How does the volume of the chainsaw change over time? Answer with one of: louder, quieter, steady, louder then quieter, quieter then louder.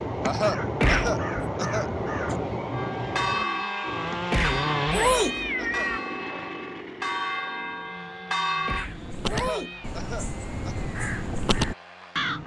louder then quieter.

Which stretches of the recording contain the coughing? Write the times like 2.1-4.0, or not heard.
0.2-2.4, 5.0-5.9, 9.3-10.8.